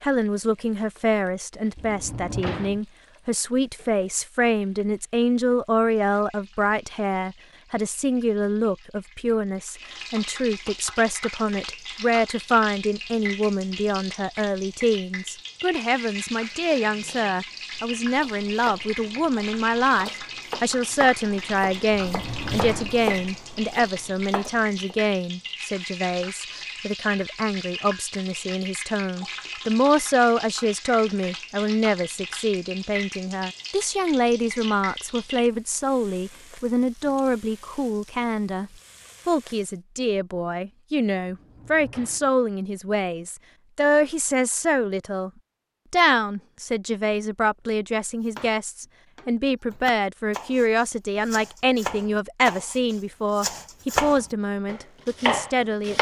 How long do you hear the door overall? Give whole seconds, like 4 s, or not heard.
3 s.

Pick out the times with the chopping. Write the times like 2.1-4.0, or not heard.
16.4-25.1, 48.2-55.9.